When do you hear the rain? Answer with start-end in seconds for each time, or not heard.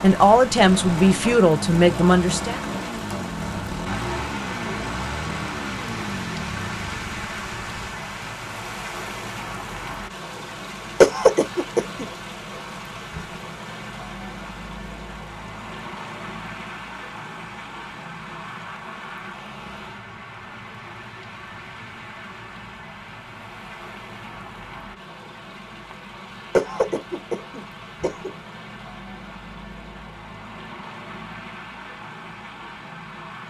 0.0-33.4.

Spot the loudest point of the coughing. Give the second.
11 s.